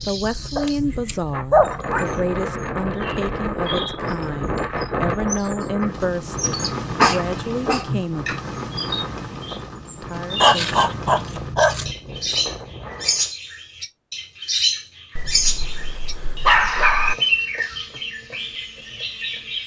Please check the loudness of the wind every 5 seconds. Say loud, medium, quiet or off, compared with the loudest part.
loud, loud, medium, off.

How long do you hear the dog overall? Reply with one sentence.
You can hear the dog for 6 seconds altogether.